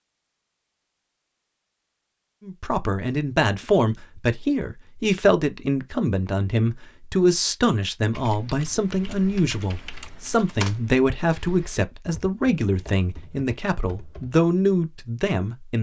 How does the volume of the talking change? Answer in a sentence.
The volume of the talking stays about the same.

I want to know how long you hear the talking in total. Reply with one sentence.
The talking can be heard for 13 seconds in total.